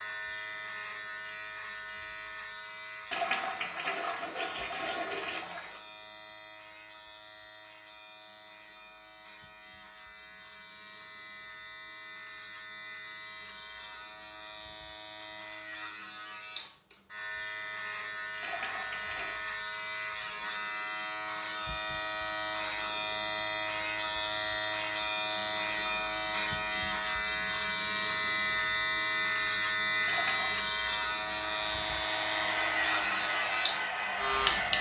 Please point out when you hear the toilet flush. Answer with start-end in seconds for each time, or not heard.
3.1-5.8, 18.4-19.4, 30.1-30.6.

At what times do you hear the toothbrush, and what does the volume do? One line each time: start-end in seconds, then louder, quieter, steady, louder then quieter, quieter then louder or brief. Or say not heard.
not heard.